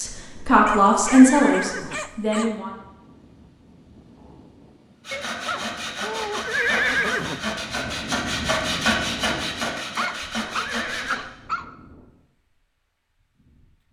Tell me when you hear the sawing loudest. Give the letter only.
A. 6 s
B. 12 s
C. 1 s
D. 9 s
D.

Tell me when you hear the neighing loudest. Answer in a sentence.
The loudest moment of the neighing is at 7 seconds.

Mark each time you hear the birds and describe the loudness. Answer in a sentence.
You can't hear the birds here.